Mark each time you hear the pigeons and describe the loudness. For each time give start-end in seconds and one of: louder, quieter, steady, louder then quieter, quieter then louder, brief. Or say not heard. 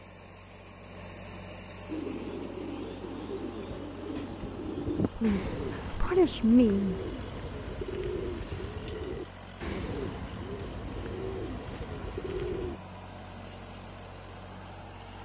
1.9-12.8 steady.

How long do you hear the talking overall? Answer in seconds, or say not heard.
2 s.